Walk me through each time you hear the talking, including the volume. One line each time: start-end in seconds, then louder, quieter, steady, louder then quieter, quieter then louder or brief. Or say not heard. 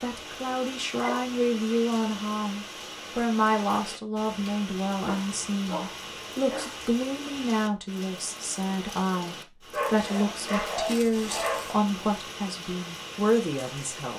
0.0-14.1 steady.